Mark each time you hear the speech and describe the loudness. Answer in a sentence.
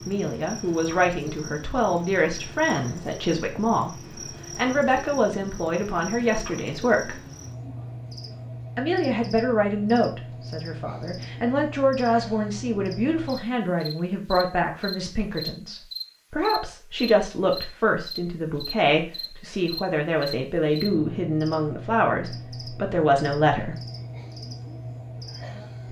You can hear the speech from 0.1 to 7.2 s, at a steady volume; and from 8.8 to 23.8 s, at a steady volume.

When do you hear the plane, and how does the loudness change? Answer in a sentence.
You can't hear the plane here.